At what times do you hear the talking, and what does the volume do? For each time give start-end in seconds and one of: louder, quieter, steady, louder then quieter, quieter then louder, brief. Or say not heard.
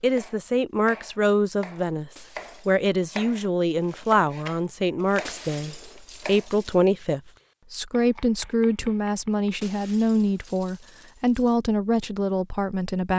0.0-13.1 steady.